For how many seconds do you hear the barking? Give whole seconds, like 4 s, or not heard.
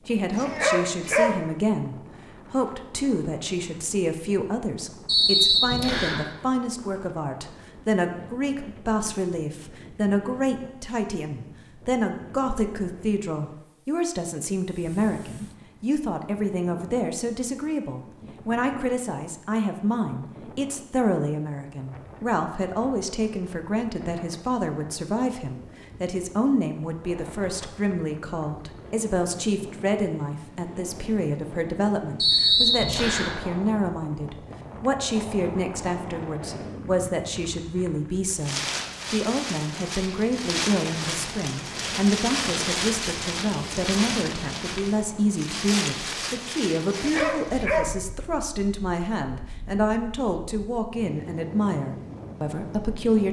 2 s.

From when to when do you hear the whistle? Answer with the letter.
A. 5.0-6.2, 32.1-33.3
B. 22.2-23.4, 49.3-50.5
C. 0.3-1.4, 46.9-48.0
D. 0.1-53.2
A.